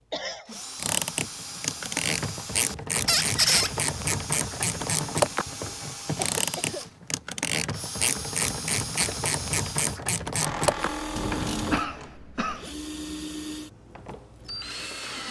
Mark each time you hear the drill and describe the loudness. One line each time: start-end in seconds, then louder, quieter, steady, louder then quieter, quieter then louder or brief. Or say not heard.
0.1-15.2 steady.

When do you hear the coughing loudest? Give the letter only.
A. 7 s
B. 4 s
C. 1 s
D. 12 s
D.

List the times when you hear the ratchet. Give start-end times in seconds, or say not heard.
0.8-11.8.